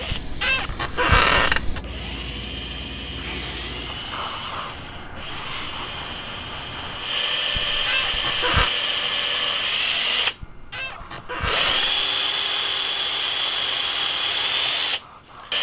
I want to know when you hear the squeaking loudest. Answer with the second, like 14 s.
1 s.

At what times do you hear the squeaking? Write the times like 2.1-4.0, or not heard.
0.1-1.8, 7.5-8.7, 10.4-12.1.